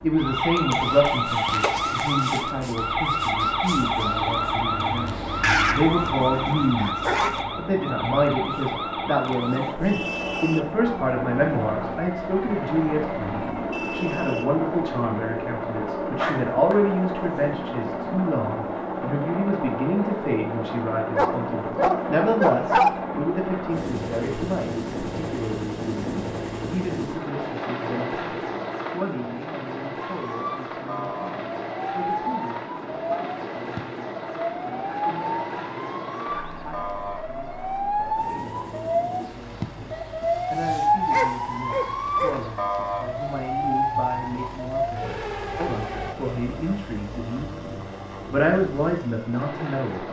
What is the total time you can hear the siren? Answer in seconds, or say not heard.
31 s.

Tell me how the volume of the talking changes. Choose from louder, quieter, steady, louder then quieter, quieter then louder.
quieter then louder.